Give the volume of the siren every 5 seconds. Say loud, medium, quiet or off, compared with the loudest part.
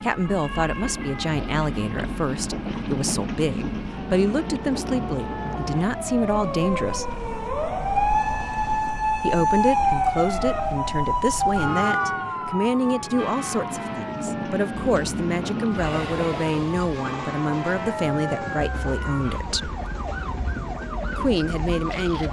quiet, loud, loud, medium, medium.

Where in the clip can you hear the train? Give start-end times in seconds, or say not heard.
0.0-10.8, 13.2-22.2.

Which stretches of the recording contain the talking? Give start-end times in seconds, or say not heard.
0.0-7.0, 9.2-19.8, 21.1-22.2.